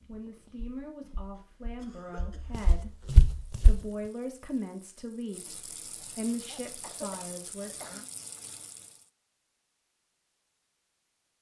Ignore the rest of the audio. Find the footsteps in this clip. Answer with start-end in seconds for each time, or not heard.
0.0-3.8.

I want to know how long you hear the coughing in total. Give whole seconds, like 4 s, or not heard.
3 s.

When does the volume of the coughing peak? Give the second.
7 s.